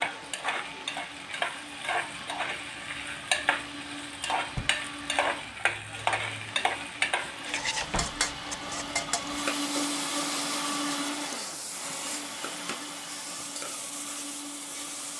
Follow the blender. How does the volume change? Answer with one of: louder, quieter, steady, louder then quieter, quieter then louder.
louder then quieter.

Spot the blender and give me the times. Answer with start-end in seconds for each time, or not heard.
0.0-15.1.